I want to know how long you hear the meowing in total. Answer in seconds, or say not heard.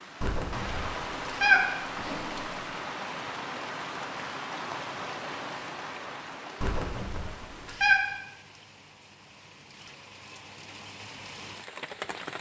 4 s.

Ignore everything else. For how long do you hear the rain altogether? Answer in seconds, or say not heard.
12 s.